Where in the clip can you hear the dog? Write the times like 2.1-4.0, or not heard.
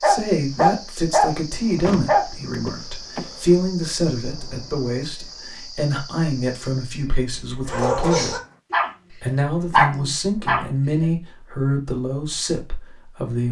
0.0-2.2, 7.7-8.9, 9.7-10.7.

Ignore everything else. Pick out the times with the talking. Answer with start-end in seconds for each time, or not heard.
0.0-8.4, 9.2-13.4.